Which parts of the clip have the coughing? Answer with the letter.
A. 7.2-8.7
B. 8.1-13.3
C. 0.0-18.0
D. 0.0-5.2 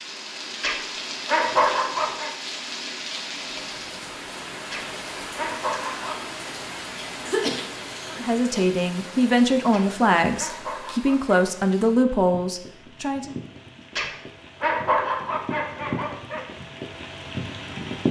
A.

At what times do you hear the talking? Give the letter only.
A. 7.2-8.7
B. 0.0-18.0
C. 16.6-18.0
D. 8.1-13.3
D.